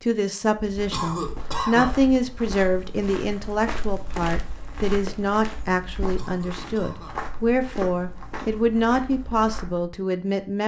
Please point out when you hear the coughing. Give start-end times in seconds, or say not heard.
0.9-1.9, 6.2-7.2.